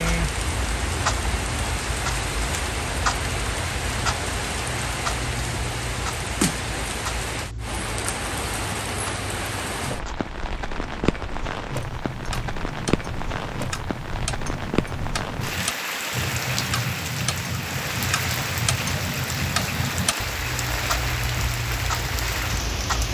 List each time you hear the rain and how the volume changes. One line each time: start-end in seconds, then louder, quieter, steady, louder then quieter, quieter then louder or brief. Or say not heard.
0.0-23.0 steady.